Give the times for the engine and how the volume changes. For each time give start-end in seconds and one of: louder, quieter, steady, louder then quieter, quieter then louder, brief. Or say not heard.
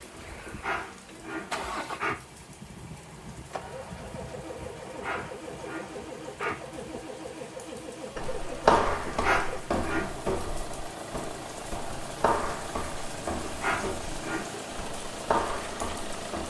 0.0-16.4 steady.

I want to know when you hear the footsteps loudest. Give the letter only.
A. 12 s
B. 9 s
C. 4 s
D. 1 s
B.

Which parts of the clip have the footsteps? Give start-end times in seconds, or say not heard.
8.2-16.4.